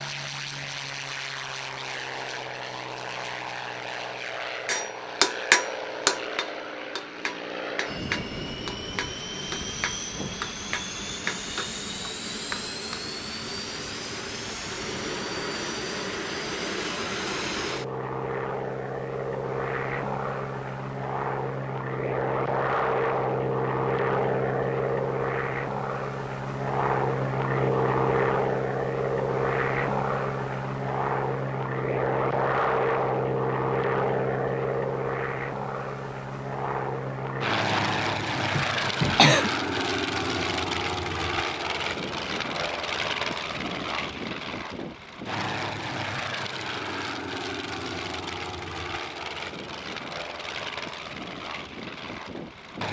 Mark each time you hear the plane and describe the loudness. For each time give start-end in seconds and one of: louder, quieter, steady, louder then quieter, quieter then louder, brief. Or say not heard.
0.0-52.8 louder then quieter.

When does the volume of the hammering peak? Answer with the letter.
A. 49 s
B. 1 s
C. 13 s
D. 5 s
D.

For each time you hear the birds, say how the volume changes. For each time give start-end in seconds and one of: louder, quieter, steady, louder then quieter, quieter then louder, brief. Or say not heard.
not heard.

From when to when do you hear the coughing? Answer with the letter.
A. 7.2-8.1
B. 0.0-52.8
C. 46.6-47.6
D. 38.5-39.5
D.